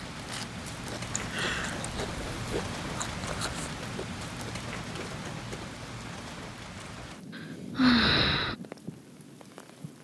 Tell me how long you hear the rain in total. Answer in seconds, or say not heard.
10 s.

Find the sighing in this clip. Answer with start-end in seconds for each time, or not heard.
1.1-1.9, 7.3-8.6.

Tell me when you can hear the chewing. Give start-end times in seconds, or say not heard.
0.1-5.6.